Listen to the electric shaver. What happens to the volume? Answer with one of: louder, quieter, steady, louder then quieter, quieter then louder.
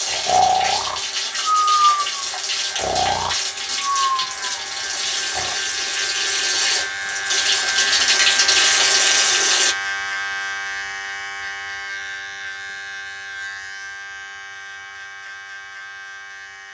louder then quieter.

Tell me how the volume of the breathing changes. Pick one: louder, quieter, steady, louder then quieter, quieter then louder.
quieter.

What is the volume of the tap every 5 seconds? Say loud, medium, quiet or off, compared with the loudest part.
medium, loud, off, off.